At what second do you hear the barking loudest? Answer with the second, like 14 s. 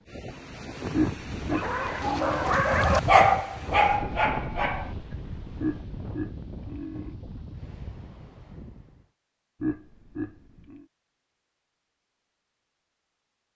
3 s.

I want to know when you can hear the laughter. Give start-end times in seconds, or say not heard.
0.9-2.6, 5.6-7.2, 9.6-10.8.